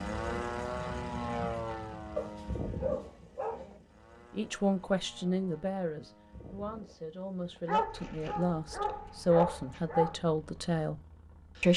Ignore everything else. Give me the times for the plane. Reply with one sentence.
You can hear the plane from 0.0 to 11.7 s.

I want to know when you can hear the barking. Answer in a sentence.
You can hear the barking from 2.1 to 3.8 s and from 7.7 to 10.2 s.